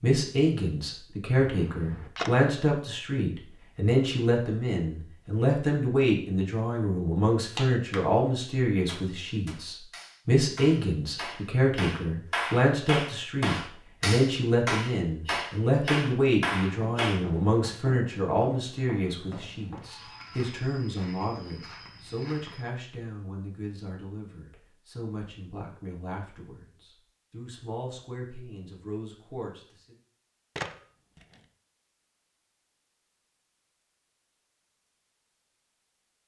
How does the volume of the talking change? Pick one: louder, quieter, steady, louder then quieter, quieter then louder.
quieter.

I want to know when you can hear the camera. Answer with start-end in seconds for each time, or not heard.
1.4-2.3, 19.8-20.5, 30.6-31.4.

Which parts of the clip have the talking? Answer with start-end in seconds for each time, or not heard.
0.0-29.9.